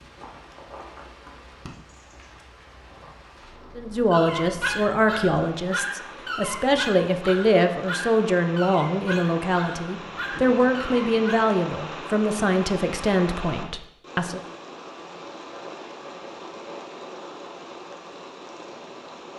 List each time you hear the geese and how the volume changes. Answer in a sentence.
You can't hear the geese here.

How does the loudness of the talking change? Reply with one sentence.
The volume of the talking stays about the same.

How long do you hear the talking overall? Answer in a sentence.
The talking can be heard for 11 seconds in total.